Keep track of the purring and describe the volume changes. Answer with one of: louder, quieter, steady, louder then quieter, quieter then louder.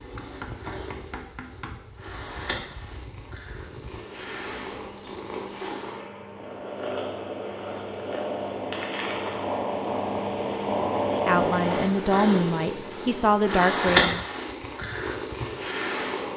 louder.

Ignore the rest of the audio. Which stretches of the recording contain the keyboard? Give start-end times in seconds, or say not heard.
not heard.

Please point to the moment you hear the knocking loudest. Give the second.
1 s.